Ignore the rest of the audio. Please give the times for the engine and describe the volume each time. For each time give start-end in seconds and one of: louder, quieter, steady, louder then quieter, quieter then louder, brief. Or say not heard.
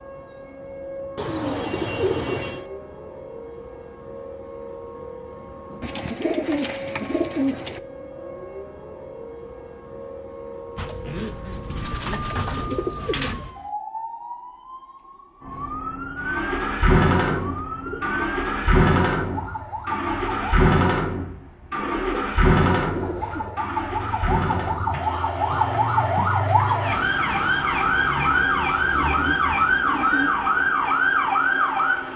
16.1-32.1 quieter.